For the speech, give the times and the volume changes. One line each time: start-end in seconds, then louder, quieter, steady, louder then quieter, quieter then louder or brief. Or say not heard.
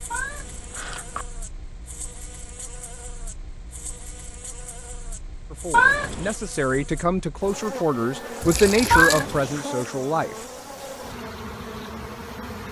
5.5-10.4 louder then quieter.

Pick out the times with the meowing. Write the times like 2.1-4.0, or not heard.
0.1-1.2, 5.7-6.3, 8.9-9.7.